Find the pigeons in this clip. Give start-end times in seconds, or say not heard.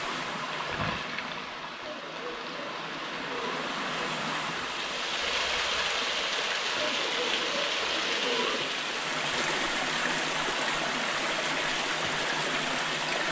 1.8-4.0, 6.8-8.8.